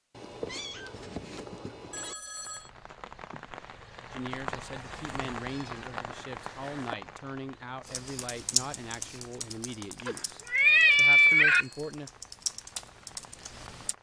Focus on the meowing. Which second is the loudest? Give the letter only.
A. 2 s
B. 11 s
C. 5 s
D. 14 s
B.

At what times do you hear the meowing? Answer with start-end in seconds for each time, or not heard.
0.1-2.1, 5.3-7.0, 10.1-11.7.